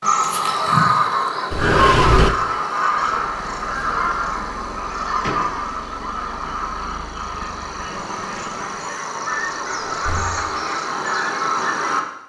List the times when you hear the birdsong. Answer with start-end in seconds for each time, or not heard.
0.0-12.0.